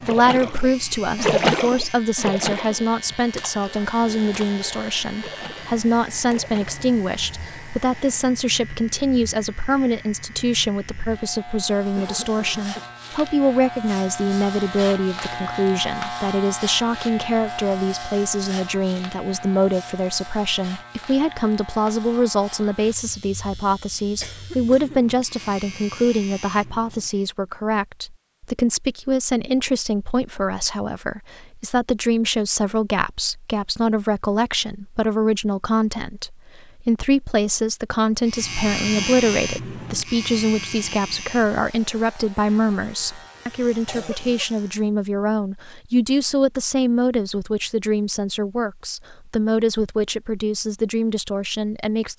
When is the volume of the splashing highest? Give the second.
1 s.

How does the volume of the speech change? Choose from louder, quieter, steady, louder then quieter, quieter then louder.
steady.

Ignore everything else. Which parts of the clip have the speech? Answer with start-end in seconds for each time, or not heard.
0.1-52.1.